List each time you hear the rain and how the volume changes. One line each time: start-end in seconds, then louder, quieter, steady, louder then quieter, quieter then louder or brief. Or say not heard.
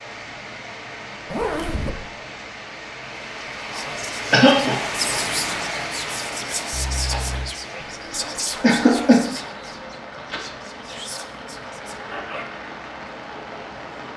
0.0-14.1 louder then quieter.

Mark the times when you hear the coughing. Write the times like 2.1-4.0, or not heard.
4.3-4.8, 8.6-9.2.